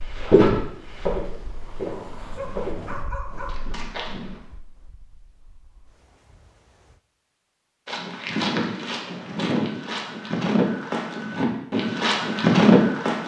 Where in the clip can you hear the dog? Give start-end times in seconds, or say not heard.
2.4-3.5.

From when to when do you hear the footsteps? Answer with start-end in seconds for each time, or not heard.
0.1-4.4, 7.8-13.2.